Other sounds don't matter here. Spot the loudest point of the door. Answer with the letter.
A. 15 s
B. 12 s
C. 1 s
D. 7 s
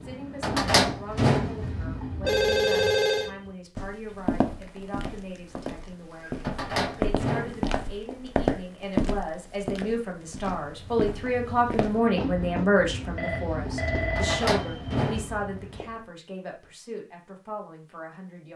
C.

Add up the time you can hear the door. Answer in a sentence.
The door can be heard for 5 seconds in total.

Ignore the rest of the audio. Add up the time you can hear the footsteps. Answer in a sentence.
The footsteps can be heard for 8 seconds in total.